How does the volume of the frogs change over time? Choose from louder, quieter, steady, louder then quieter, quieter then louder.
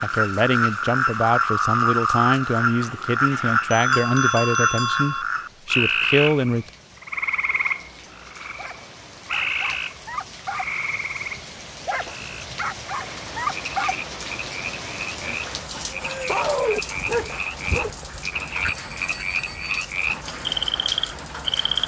quieter then louder.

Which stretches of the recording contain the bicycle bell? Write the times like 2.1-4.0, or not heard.
3.2-5.2, 18.6-19.9.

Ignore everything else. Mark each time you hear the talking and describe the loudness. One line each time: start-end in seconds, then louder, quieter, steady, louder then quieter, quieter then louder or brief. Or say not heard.
0.0-6.7 steady.